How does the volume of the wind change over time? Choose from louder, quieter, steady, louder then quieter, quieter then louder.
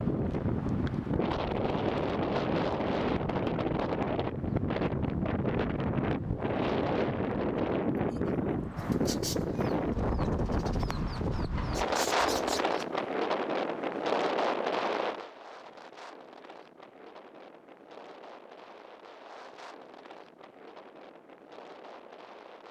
quieter.